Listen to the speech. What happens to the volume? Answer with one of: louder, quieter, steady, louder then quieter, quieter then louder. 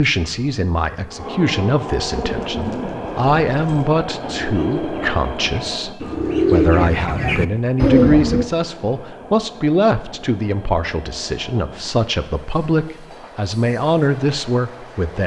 steady.